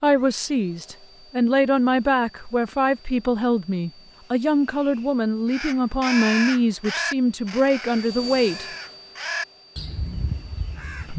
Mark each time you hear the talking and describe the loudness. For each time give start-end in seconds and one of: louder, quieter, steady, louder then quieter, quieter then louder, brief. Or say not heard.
0.0-8.7 steady.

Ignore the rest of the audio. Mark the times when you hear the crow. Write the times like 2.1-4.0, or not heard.
5.5-11.1.